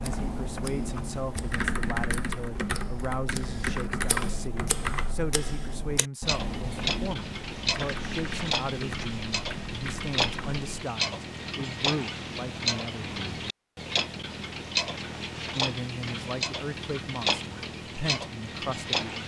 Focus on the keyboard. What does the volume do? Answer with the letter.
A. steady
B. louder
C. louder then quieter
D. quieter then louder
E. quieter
E.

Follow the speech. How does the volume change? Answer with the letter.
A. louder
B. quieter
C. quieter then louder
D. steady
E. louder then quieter
D.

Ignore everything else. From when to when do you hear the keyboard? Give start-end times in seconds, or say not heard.
0.0-10.7.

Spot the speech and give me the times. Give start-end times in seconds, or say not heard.
0.0-13.2, 15.6-19.2.